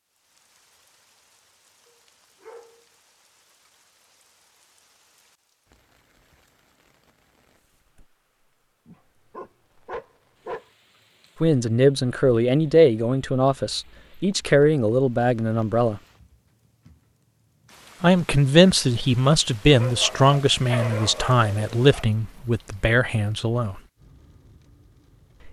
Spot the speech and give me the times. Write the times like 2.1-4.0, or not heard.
11.4-16.0, 18.0-23.8.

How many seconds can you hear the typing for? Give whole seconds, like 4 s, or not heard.
not heard.